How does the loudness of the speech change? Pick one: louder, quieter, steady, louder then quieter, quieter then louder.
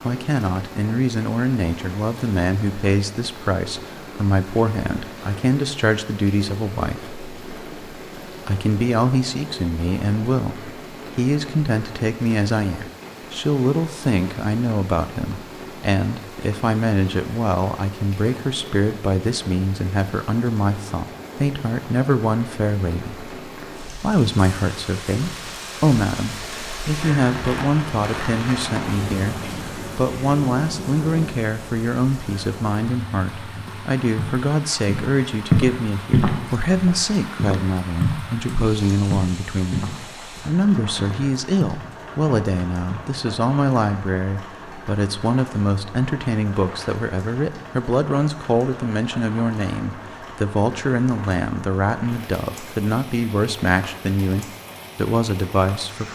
steady.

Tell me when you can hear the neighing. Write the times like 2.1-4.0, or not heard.
not heard.